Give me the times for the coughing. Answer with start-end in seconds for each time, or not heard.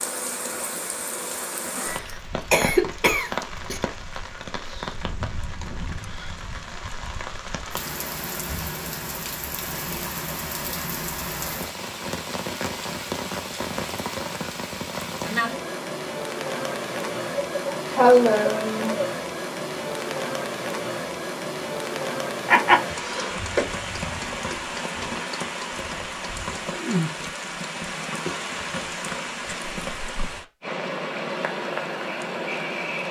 2.5-3.8, 17.4-19.1, 22.4-23.6.